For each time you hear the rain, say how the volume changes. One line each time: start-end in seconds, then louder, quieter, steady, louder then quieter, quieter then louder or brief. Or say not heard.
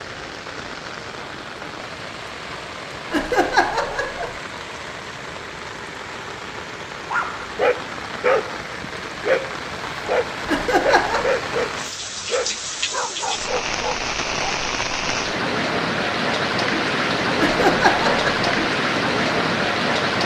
0.0-20.2 louder.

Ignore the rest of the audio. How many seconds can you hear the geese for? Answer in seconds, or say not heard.
not heard.